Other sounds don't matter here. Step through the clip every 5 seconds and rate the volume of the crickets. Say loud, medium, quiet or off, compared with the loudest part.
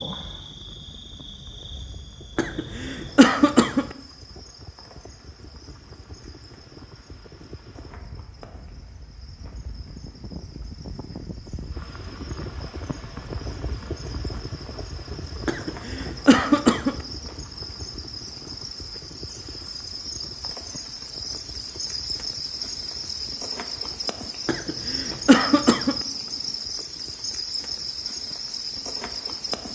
medium, quiet, quiet, medium, loud, loud.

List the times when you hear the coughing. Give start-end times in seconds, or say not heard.
2.4-4.0, 15.4-16.9, 24.4-26.1.